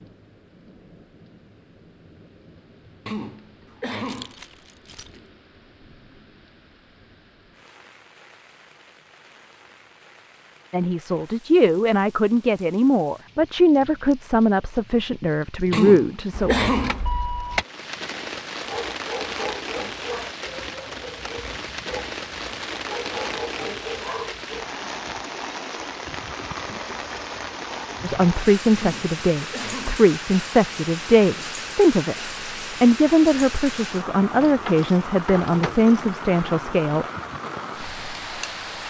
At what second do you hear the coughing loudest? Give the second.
17 s.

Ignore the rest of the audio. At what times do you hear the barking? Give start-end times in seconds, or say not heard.
18.6-24.6.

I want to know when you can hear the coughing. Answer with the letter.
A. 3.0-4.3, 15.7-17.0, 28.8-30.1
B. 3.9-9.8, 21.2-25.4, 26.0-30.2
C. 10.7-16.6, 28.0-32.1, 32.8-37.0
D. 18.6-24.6
A.